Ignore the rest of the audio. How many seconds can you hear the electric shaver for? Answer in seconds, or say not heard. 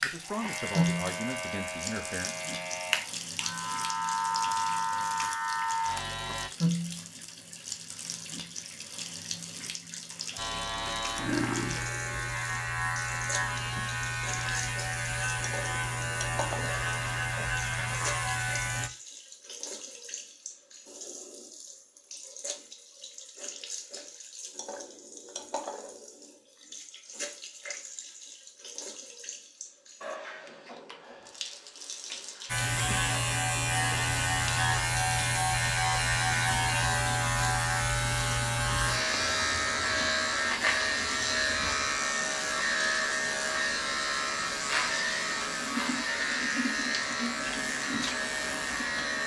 32 s.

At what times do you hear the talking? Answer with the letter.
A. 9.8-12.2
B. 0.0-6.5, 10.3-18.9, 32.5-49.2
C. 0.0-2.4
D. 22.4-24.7
C.